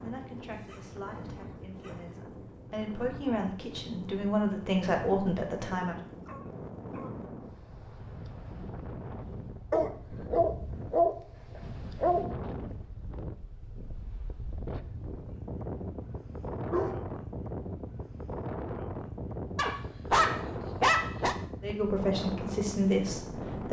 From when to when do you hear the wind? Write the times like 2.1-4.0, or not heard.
0.0-23.6.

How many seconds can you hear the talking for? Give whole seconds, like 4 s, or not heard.
8 s.